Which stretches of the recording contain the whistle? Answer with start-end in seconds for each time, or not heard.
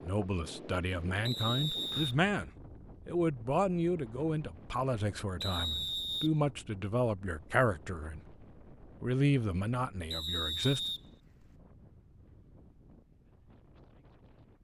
1.2-2.1, 5.4-6.3, 10.1-11.5.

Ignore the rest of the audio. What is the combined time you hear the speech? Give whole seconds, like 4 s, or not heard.
10 s.